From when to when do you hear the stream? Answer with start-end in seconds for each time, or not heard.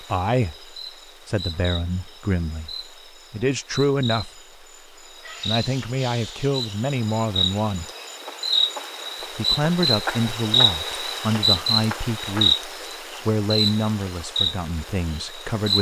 not heard.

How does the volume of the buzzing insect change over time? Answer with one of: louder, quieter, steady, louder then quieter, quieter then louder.
louder.